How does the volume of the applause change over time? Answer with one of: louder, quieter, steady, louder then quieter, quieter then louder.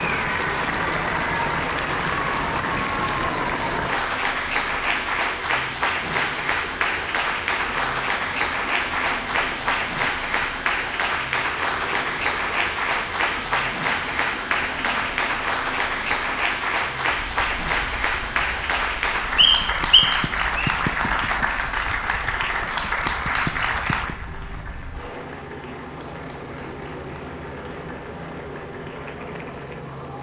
quieter.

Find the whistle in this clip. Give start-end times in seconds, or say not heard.
19.4-20.8.